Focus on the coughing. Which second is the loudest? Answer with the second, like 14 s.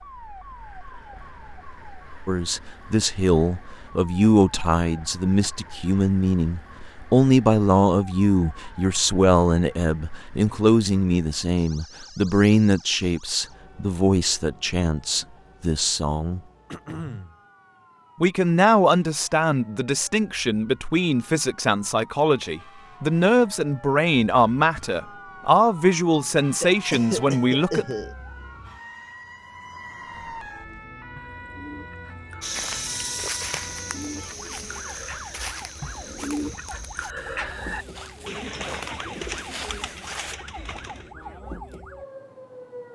27 s.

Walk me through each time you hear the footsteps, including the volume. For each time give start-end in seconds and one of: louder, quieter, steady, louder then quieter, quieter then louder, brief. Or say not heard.
32.4-40.4 quieter then louder.